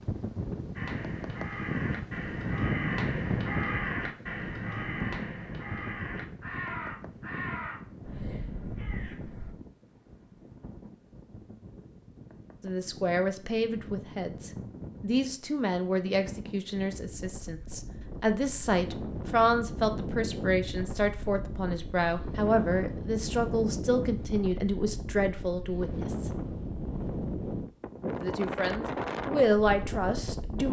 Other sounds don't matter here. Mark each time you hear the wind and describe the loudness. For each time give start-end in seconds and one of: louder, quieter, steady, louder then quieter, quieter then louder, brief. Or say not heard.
0.0-30.6 quieter then louder.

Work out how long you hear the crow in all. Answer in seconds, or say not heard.
9 s.